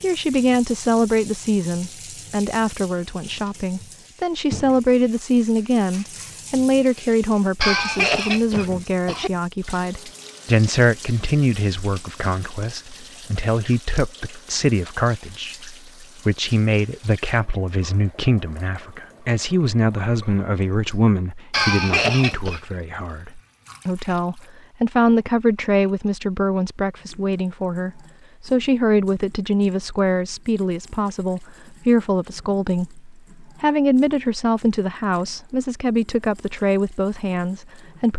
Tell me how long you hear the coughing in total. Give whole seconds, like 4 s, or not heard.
3 s.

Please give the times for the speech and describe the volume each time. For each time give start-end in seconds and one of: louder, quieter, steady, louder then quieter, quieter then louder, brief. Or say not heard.
0.0-38.1 steady.